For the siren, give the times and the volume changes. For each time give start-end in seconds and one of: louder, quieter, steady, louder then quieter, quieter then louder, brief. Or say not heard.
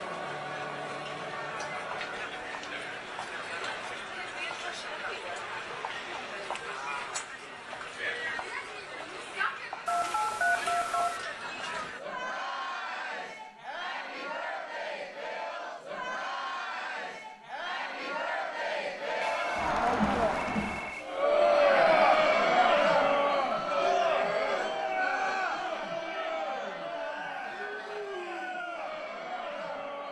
not heard.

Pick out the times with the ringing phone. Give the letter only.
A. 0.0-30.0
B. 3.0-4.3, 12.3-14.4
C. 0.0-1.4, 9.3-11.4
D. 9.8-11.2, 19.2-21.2
D.